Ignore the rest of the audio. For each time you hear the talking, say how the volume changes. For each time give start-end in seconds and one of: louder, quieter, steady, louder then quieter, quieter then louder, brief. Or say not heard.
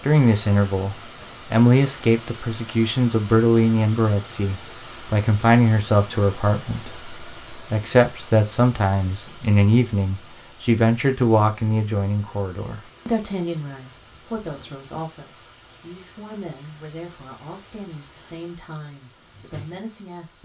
0.0-20.4 quieter.